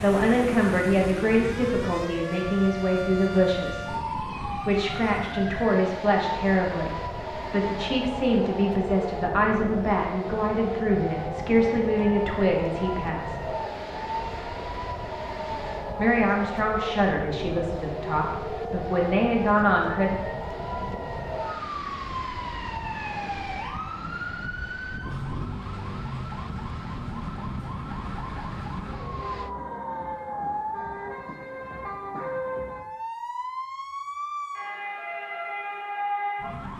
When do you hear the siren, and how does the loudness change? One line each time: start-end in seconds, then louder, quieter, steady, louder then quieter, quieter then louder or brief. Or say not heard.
0.0-36.7 steady.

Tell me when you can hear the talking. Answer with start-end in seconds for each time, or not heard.
0.0-13.5, 15.9-20.1.